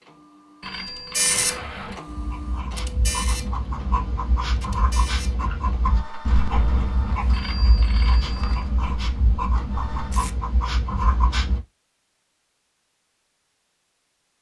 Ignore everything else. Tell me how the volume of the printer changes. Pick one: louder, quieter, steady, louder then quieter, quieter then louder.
quieter.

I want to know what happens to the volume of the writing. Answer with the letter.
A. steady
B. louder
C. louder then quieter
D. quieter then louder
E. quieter
A.